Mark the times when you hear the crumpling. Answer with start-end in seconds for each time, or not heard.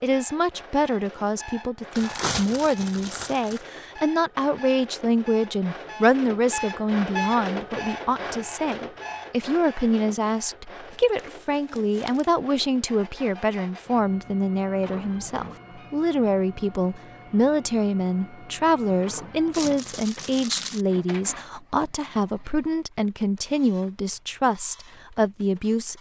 1.9-3.6, 10.9-12.3, 19.5-20.9.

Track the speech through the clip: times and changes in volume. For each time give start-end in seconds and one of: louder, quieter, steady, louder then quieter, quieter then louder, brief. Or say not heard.
0.0-25.9 steady.